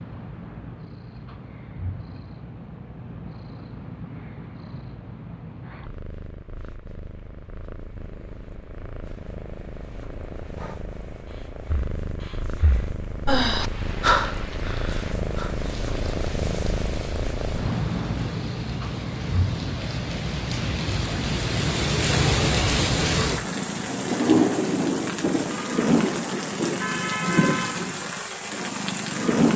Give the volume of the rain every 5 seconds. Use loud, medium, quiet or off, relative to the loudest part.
off, off, quiet, quiet, loud, loud.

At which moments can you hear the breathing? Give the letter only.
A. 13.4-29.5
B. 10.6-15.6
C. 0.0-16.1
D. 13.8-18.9
B.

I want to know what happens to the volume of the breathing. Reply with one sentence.
The loudness of the breathing goes up, then down.